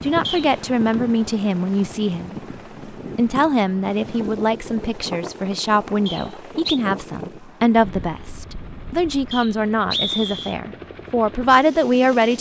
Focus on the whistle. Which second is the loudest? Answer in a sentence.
The loudest moment of the whistle is at 10 seconds.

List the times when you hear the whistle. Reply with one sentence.
The whistle can be heard from 0.2 to 0.7 s, from 6.0 to 6.8 s and from 9.3 to 10.6 s.